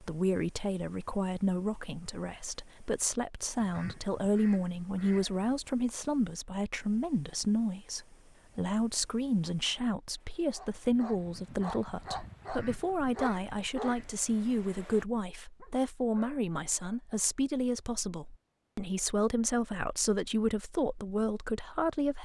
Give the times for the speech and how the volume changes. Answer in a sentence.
The speech can be heard from 0.0 to 22.2 s, at a steady volume.